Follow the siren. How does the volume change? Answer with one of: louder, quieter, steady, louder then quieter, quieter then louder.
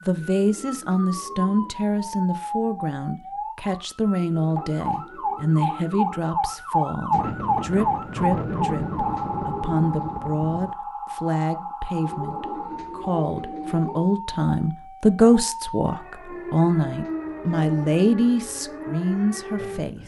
louder then quieter.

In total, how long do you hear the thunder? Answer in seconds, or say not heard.
4 s.